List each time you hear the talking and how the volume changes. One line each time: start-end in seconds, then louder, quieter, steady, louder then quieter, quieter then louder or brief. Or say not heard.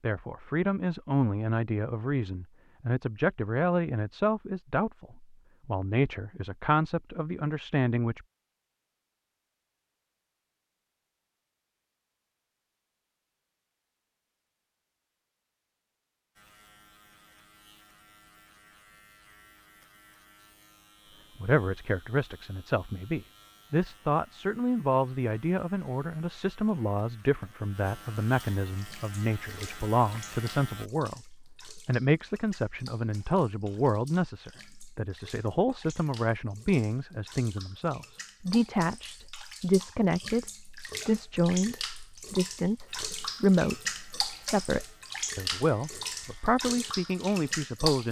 0.0-8.2 steady
21.4-48.0 steady.